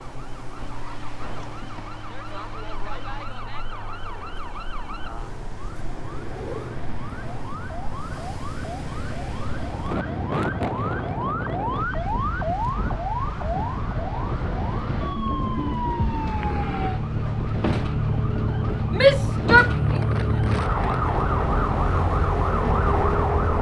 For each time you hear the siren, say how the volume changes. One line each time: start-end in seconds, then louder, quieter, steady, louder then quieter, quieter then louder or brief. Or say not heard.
0.0-23.5 louder.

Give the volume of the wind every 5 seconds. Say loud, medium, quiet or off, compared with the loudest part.
quiet, medium, loud, loud, loud.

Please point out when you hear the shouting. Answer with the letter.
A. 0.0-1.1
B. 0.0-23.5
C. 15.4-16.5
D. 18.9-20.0
D.